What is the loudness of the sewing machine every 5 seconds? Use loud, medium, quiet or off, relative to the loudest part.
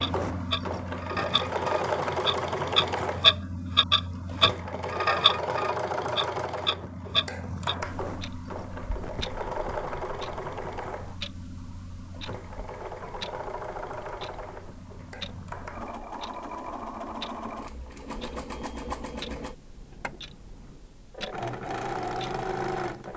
loud, loud, medium, medium, loud.